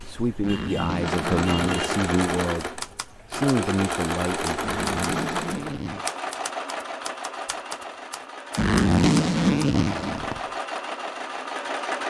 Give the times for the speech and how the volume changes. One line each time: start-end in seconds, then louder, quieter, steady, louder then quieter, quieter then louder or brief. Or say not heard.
0.0-4.7 steady.